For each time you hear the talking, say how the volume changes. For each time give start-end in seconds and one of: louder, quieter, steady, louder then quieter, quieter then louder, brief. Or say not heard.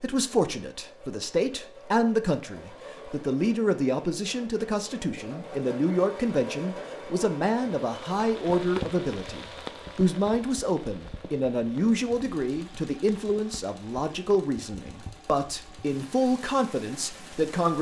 0.0-17.7 steady.